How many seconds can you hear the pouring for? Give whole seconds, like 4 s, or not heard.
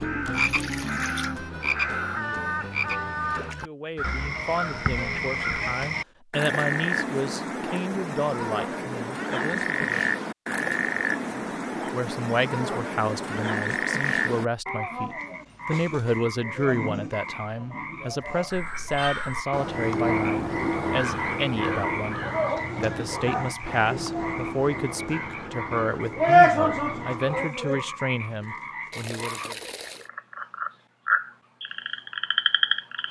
2 s.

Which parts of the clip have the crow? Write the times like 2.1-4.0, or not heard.
0.0-5.7, 18.5-27.4.